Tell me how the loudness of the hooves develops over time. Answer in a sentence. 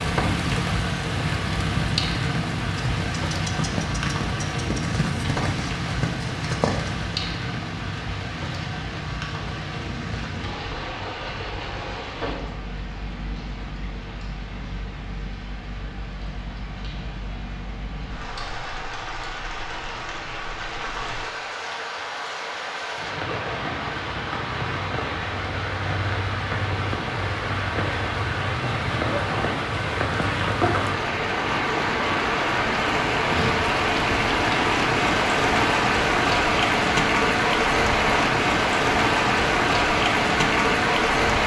The volume of the hooves stays about the same.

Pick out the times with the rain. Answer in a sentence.
You can hear the rain from 0.0 to 41.4 s.